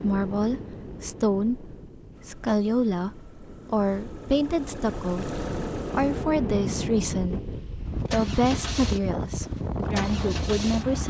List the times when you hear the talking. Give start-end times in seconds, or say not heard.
0.0-7.5, 8.1-11.0.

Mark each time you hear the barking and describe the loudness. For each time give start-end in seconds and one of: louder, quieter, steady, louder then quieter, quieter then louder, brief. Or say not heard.
not heard.